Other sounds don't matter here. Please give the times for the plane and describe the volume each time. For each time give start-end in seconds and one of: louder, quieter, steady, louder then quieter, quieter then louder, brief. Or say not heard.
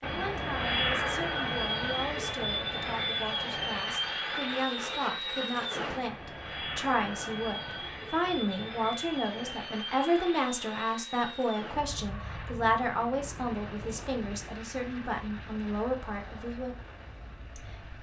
0.0-17.9 quieter.